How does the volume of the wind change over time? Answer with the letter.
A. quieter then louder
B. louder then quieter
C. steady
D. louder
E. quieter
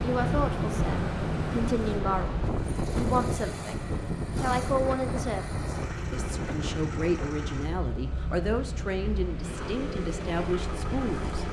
E.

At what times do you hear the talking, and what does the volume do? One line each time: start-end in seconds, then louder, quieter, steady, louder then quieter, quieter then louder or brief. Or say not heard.
0.0-11.4 steady.